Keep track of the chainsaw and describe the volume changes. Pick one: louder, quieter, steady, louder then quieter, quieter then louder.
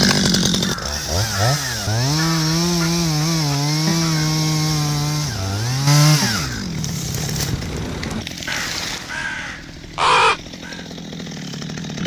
quieter.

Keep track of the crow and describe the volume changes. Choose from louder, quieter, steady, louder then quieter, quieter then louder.
louder.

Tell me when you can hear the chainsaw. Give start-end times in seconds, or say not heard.
0.0-12.0.